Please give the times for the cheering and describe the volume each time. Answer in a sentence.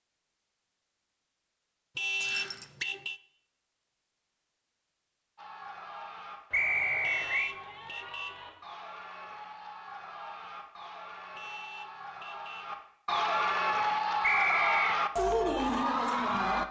You can hear the cheering from 5.3 to 16.6 s, getting louder.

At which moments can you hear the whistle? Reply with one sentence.
The whistle can be heard from 2.2 to 2.9 s, from 6.5 to 7.5 s and from 14.2 to 14.8 s.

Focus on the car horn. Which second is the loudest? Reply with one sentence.
The loudest moment of the car horn is at 2 seconds.